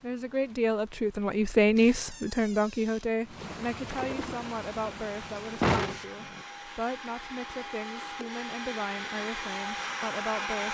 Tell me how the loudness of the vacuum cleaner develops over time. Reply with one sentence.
The loudness of the vacuum cleaner goes up.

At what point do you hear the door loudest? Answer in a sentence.
The volume of the door peaks at 6 seconds.